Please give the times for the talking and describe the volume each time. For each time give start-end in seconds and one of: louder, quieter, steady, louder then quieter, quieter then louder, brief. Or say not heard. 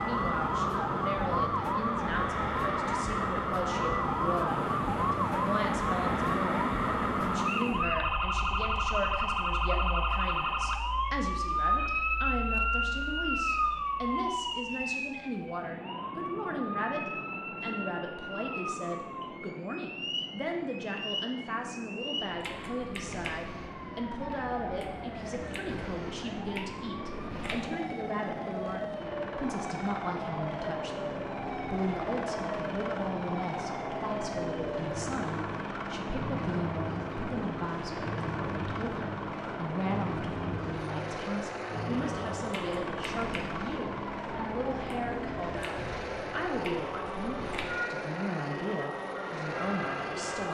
0.0-50.4 steady.